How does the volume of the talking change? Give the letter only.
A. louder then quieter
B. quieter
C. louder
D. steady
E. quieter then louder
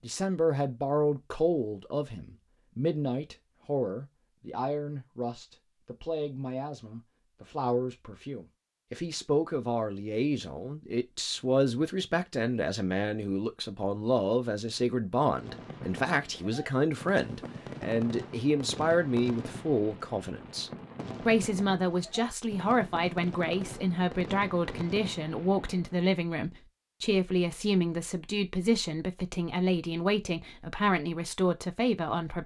D.